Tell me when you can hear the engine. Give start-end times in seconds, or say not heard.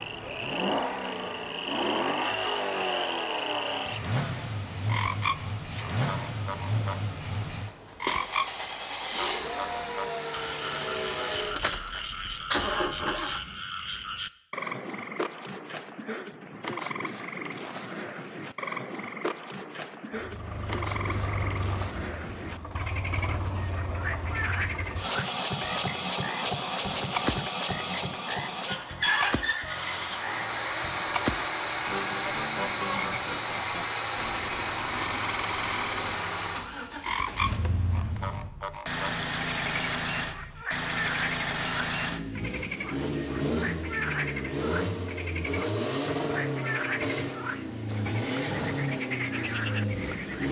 0.0-13.6, 20.1-50.4.